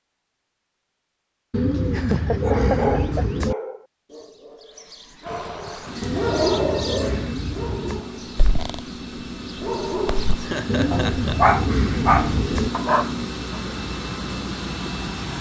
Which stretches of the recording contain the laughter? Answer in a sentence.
The laughter can be heard from 1.9 to 3.2 s and from 10.4 to 11.6 s.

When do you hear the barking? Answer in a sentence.
The barking can be heard from 2.4 to 8.8 s and from 9.4 to 13.6 s.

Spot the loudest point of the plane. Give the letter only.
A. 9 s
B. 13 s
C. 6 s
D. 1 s
B.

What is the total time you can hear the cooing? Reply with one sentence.
You can hear the cooing for 6 seconds altogether.